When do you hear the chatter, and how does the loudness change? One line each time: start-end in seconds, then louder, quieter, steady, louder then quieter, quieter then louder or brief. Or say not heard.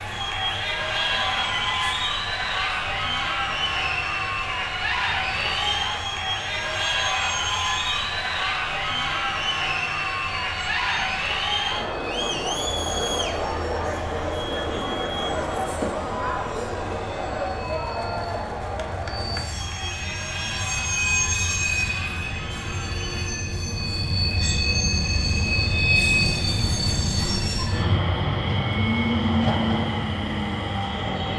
0.0-23.4 quieter.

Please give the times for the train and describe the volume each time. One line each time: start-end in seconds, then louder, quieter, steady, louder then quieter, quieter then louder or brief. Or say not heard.
0.0-31.3 louder.